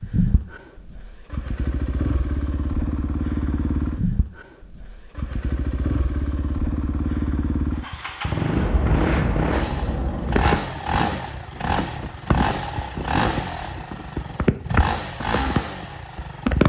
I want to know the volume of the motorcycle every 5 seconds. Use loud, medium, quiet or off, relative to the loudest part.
medium, loud, loud, loud.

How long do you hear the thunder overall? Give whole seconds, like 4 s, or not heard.
2 s.